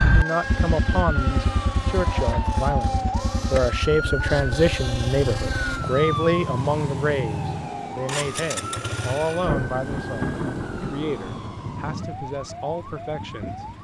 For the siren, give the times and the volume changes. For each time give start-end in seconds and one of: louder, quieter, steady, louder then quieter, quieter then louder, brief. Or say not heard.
0.0-13.7 quieter.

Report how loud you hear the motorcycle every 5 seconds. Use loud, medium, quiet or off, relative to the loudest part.
loud, loud, medium.